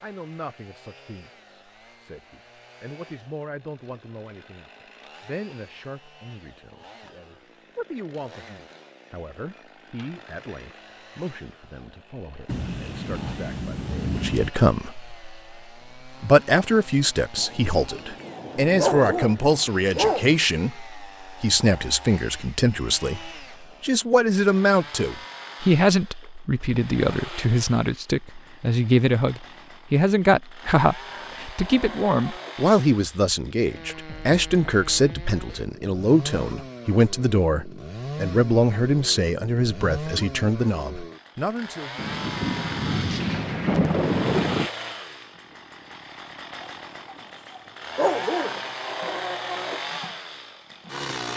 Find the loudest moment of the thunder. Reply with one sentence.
The volume of the thunder peaks at 44 seconds.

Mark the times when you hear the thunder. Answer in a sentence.
You can hear the thunder from 12.4 to 14.5 s, from 17.4 to 19.2 s and from 42.0 to 44.7 s.